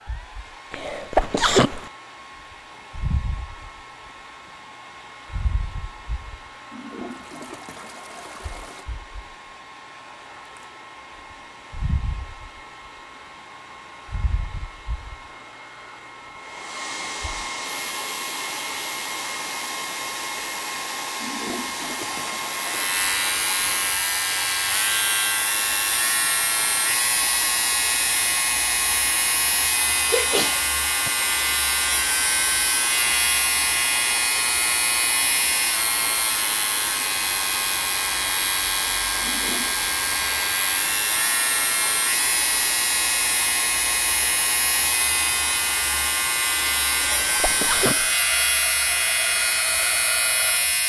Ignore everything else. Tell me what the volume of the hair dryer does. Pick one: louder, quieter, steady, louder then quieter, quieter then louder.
louder.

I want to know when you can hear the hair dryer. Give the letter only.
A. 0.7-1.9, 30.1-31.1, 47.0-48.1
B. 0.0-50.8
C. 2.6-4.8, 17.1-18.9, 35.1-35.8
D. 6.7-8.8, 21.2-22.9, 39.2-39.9
B.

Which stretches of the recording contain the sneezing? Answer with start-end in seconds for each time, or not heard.
0.7-1.9, 30.1-31.1, 47.0-48.1.